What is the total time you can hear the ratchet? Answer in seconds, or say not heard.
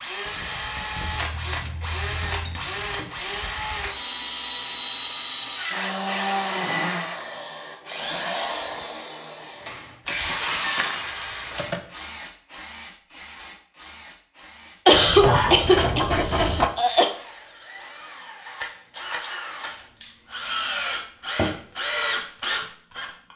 9 s.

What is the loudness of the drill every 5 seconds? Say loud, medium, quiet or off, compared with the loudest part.
loud, loud, medium, medium, loud.